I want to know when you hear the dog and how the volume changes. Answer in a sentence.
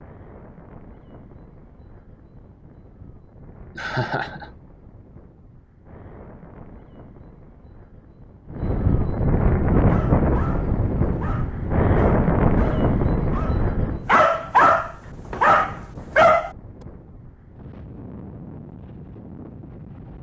You can hear the dog from 9.8 to 16.5 s, getting louder.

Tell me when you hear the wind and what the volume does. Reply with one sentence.
The wind can be heard from 0.0 to 20.1 s, getting louder then quieter.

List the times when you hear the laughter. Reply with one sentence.
You can hear the laughter from 3.8 to 4.5 s.